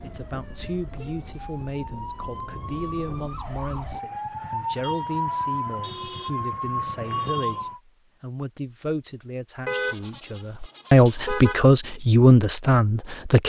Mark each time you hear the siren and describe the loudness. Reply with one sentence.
The siren can be heard from 0.0 to 7.8 s, getting louder.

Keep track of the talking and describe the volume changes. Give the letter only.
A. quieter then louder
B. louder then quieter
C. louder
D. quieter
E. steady
C.